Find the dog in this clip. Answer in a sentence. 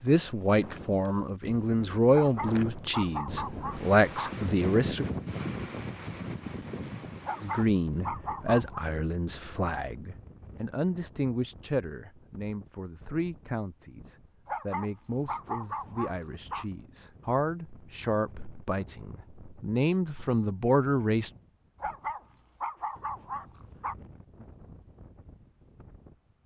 You can hear the dog from 2.1 to 4.3 s, from 7.2 to 8.8 s, from 14.4 to 16.6 s and from 21.8 to 23.9 s.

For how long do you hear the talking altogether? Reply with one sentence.
The talking can be heard for 19 seconds in total.